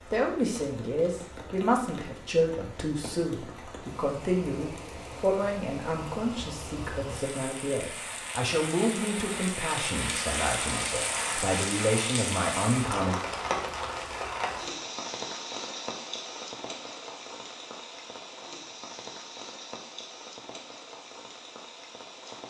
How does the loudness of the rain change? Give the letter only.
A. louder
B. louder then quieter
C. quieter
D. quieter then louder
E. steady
B.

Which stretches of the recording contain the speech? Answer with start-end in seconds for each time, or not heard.
0.0-13.2.